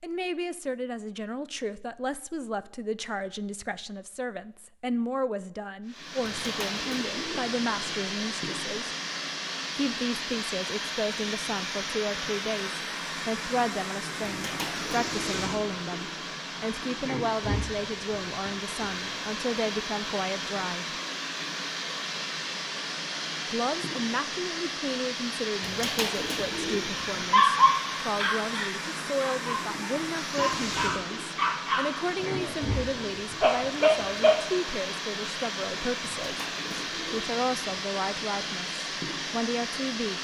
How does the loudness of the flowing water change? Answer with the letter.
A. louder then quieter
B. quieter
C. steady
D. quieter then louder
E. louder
C.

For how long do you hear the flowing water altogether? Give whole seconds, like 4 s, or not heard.
34 s.